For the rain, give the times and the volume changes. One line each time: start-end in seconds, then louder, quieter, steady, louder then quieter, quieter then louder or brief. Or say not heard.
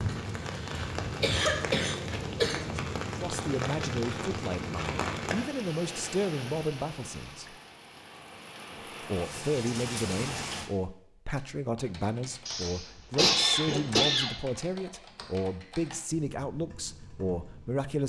0.0-10.7 quieter then louder.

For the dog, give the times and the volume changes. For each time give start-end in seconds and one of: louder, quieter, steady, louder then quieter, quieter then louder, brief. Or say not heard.
not heard.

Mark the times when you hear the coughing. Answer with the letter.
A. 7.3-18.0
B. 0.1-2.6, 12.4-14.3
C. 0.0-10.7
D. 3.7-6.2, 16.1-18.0
B.